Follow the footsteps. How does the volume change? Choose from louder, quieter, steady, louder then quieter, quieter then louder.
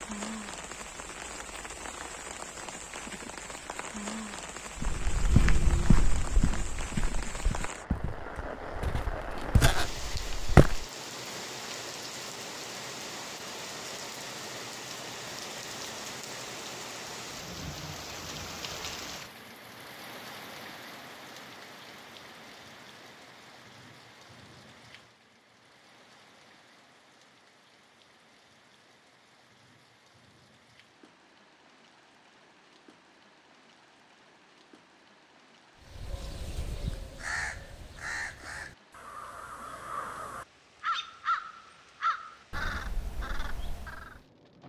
quieter then louder.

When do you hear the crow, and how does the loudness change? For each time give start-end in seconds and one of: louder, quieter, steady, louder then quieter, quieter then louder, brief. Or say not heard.
35.9-44.2 louder then quieter.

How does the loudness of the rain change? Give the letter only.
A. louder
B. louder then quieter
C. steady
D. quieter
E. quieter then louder
D.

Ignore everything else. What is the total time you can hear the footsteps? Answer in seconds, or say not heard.
6 s.